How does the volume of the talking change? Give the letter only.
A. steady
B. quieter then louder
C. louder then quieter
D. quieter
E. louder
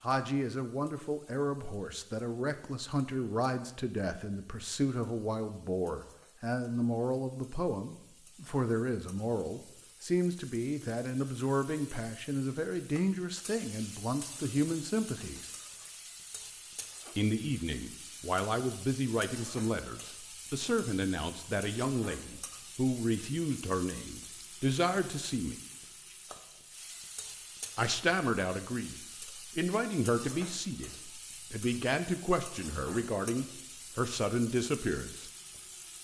A.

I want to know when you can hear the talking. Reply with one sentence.
The talking can be heard from 0.0 to 15.5 s, from 17.1 to 25.6 s and from 27.8 to 35.3 s.